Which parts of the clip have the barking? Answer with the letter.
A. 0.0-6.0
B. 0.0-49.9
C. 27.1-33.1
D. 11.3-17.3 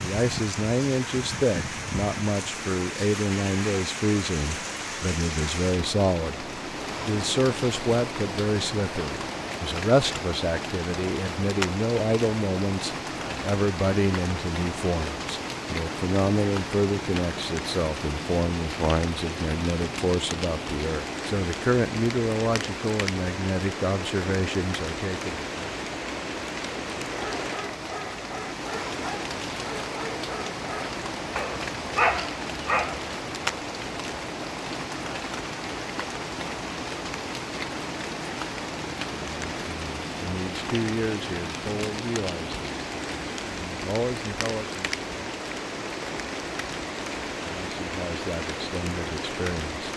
C.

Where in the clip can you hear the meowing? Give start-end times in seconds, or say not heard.
not heard.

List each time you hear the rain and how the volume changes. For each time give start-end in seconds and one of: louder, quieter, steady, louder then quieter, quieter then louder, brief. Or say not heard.
0.0-49.9 steady.